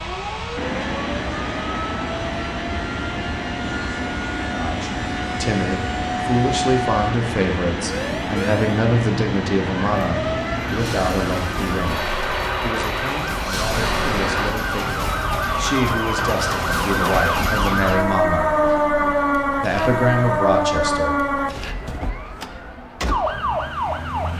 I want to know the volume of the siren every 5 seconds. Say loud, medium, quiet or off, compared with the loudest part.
quiet, medium, medium, loud, loud.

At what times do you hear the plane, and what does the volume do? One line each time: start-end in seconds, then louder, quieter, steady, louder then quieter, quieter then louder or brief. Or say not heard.
0.0-14.6 steady.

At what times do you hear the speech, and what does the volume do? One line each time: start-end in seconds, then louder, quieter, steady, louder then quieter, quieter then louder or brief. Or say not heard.
4.5-18.6 quieter then louder
19.6-21.4 brief.